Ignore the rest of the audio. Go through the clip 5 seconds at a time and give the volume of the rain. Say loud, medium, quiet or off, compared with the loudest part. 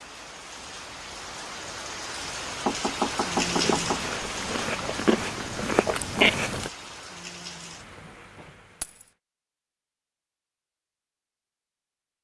loud, medium, off.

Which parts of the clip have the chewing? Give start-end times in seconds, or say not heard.
3.4-6.7.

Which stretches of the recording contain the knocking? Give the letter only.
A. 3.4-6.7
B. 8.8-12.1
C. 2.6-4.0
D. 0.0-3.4
C.